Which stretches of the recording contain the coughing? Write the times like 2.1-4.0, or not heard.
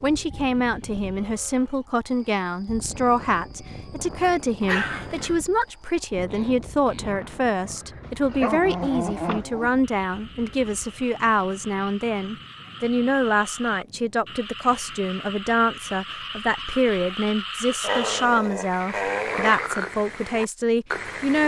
not heard.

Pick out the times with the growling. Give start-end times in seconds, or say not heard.
4.6-5.3, 8.0-9.8, 17.8-19.6.